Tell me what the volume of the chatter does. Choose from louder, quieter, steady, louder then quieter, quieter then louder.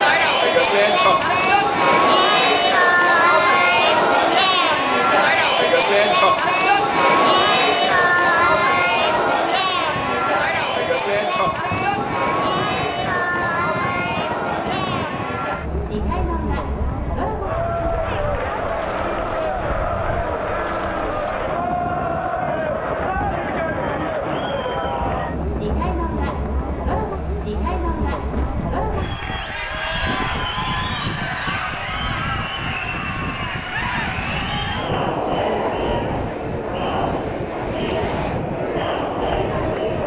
quieter.